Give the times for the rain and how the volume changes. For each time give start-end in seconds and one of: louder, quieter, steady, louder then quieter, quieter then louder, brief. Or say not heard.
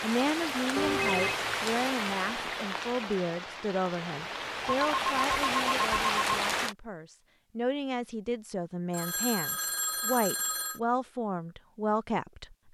0.0-6.8 quieter then louder.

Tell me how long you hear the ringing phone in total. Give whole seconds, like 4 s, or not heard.
4 s.